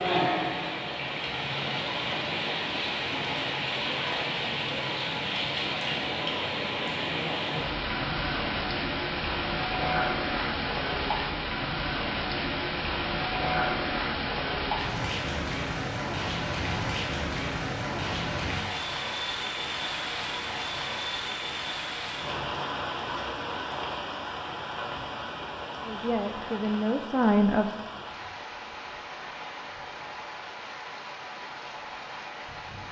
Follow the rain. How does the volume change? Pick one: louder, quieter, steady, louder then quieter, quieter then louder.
quieter.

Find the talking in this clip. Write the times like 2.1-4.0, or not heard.
25.8-27.8.